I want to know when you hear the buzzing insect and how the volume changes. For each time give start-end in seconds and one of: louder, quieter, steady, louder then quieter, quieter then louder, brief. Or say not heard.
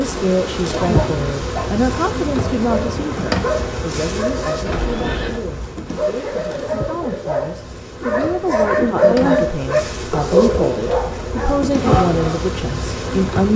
0.0-13.5 quieter then louder.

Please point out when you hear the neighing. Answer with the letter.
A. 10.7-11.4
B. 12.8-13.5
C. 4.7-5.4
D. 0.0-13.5
C.